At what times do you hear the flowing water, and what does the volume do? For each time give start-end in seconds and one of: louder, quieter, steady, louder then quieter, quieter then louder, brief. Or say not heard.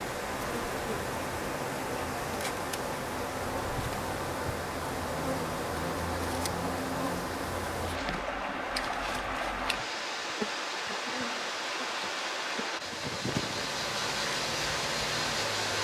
0.0-15.7 steady.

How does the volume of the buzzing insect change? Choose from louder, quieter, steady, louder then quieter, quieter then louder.
steady.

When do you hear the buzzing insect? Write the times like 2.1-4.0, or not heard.
0.0-15.7.